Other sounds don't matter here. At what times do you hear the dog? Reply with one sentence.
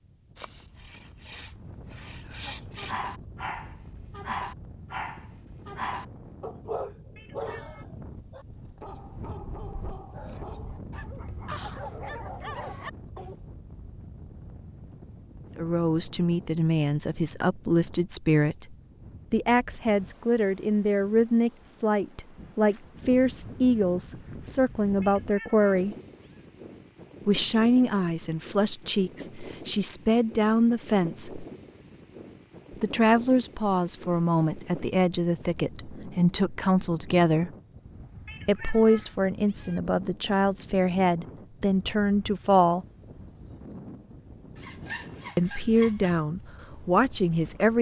You can hear the dog from 2.8 to 13.3 s.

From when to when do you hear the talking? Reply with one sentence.
The talking can be heard from 15.6 to 25.9 s, from 27.2 to 31.4 s, from 32.8 to 37.5 s, from 38.5 to 42.9 s and from 45.4 to 47.7 s.